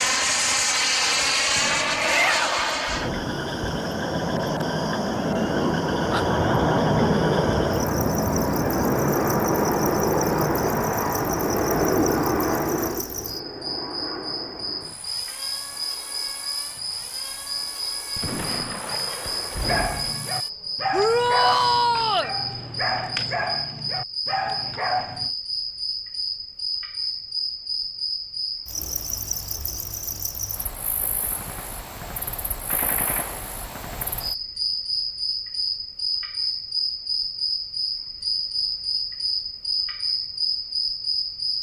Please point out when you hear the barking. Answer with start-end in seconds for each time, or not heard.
19.6-25.3.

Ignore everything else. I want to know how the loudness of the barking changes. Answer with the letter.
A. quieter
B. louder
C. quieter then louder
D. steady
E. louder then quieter
D.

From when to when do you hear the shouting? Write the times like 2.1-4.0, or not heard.
1.9-2.6, 20.9-22.3.